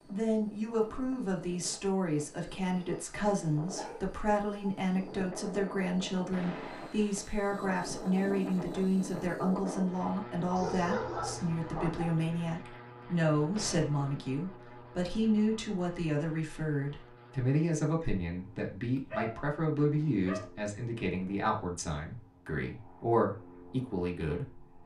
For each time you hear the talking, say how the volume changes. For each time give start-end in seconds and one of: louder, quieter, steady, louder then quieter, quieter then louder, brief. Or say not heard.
0.1-24.7 steady.